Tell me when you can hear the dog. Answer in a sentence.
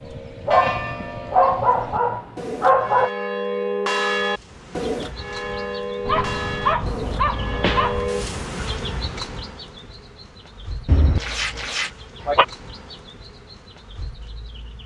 You can hear the dog from 0.5 to 3.1 s, from 6.0 to 8.1 s and from 10.8 to 12.4 s.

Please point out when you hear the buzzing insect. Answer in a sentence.
You can hear the buzzing insect from 4.2 to 14.8 s.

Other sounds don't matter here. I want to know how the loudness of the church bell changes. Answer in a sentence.
The loudness of the church bell goes up, then down.